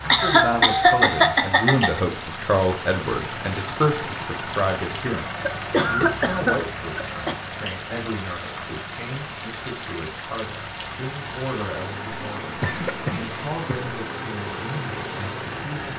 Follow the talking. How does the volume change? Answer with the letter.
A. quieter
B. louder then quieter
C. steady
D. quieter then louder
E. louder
A.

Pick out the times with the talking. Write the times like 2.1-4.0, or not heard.
0.0-15.9.